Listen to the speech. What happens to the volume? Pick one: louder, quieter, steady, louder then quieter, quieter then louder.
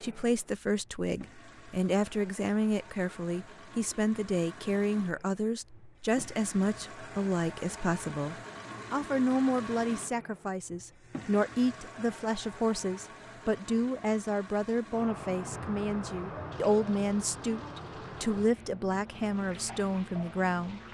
steady.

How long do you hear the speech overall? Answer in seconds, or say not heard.
21 s.